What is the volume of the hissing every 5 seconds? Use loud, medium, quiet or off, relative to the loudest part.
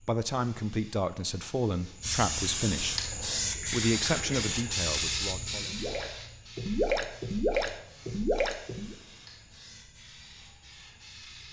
loud, medium, quiet.